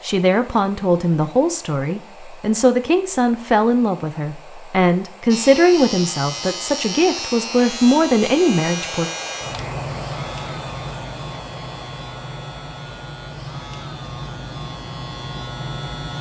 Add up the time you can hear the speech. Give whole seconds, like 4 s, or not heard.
9 s.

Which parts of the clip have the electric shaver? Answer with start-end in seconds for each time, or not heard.
5.2-16.1.